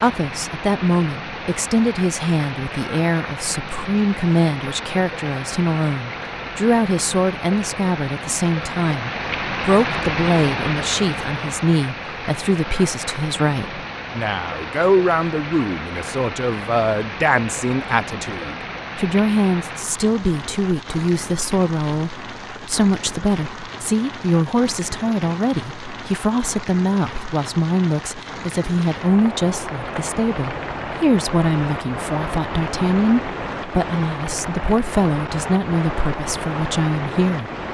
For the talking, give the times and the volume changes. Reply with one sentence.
You can hear the talking from 0.0 to 37.5 s, at a steady volume.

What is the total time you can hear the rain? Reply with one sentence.
You can hear the rain for 38 seconds altogether.